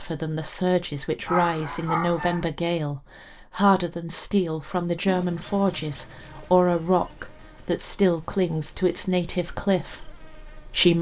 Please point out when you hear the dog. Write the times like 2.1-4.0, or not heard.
1.2-2.5.